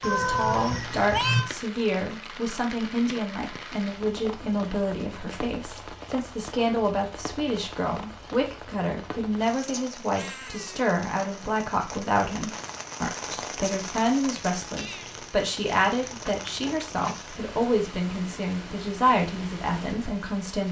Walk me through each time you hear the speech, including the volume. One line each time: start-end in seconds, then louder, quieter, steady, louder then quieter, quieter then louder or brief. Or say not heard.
0.0-20.6 steady.